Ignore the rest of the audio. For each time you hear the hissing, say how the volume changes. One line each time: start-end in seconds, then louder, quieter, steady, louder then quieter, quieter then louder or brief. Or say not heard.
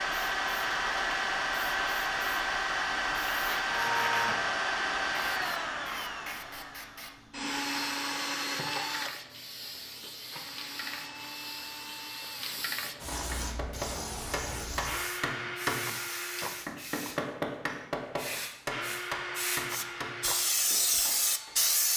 0.1-21.9 quieter then louder.